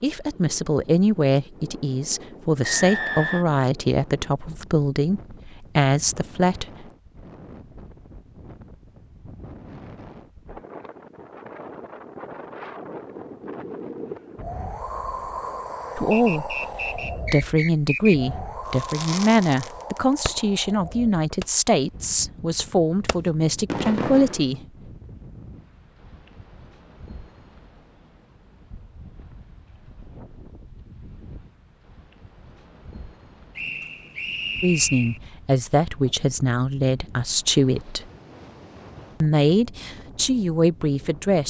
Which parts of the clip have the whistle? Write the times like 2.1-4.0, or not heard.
2.6-3.5, 16.1-18.1, 33.5-35.2.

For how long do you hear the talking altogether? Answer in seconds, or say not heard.
21 s.